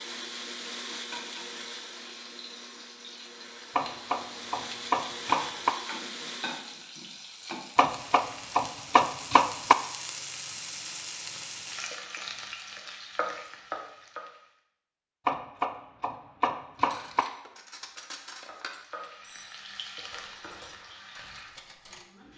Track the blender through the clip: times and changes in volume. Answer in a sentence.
You can hear the blender from 0.0 to 6.9 s, getting quieter then louder.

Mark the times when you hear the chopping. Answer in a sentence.
The chopping can be heard from 3.8 to 5.7 s, from 7.8 to 9.8 s and from 15.2 to 17.2 s.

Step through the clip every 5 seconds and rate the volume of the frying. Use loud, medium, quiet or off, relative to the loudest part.
medium, loud, loud, medium, medium.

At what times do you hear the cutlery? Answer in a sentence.
You can hear the cutlery from 16.8 to 22.1 s.